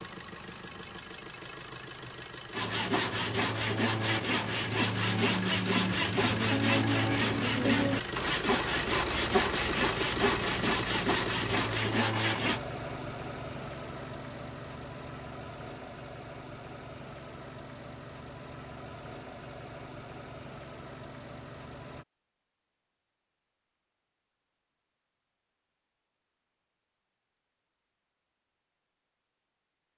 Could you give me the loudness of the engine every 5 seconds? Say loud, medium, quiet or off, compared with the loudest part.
medium, loud, loud, medium, medium, off.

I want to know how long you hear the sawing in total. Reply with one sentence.
The sawing can be heard for 10 seconds in total.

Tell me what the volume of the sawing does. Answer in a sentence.
The loudness of the sawing stays about the same.